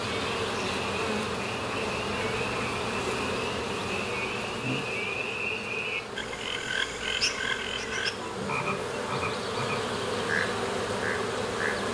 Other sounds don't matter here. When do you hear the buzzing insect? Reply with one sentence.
The buzzing insect can be heard from 0.0 to 11.8 s.